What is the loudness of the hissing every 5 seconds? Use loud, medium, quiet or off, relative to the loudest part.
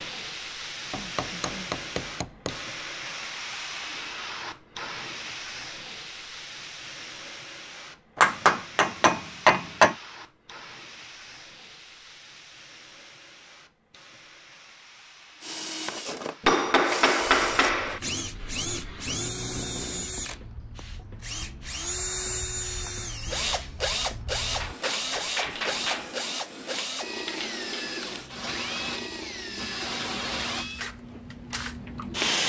medium, medium, quiet, quiet, quiet, medium, loud.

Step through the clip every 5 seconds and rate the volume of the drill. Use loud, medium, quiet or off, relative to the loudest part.
off, off, off, loud, loud, loud, medium.